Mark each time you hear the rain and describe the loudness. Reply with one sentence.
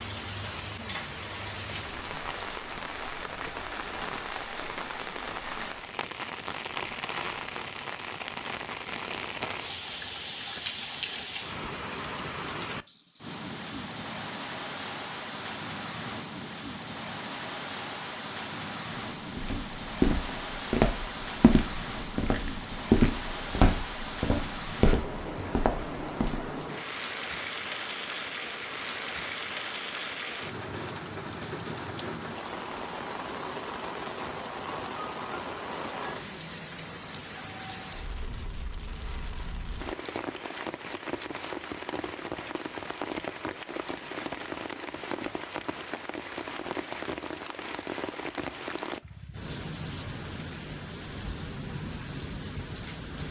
You can hear the rain from 0.0 to 53.2 s, at a steady volume.